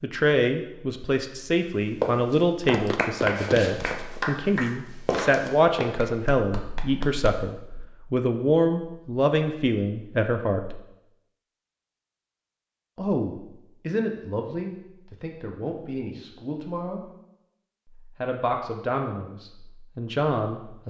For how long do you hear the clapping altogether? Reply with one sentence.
You can hear the clapping for 5 seconds altogether.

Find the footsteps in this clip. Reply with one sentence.
The footsteps can be heard from 1.8 to 5.9 s.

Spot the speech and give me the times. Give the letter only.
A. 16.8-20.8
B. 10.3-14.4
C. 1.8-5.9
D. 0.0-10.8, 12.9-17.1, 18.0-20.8
D.